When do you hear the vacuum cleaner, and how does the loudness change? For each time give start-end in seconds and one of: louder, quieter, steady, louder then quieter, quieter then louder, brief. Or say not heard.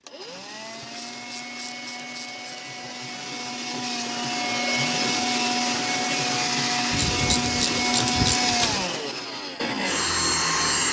0.0-10.8 louder.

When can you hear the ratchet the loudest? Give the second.
8 s.